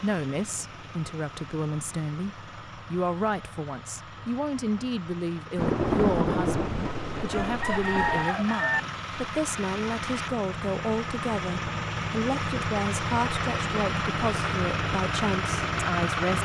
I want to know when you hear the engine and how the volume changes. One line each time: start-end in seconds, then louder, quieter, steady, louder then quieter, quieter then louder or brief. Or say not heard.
0.0-16.3 louder.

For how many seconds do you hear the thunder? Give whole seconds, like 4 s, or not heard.
3 s.